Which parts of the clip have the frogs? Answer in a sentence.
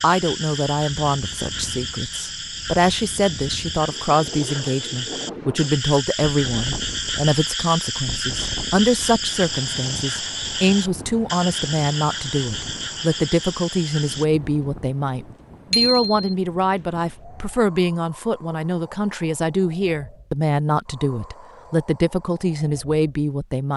The frogs can be heard from 0.0 to 14.2 s.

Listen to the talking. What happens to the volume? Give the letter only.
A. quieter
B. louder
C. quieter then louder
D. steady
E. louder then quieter
D.